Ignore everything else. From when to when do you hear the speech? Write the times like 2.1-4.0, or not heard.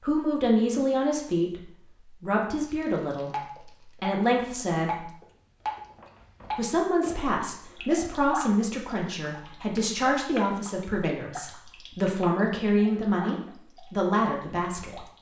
0.0-5.1, 6.5-15.0.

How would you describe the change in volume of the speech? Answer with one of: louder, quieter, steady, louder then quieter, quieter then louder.
steady.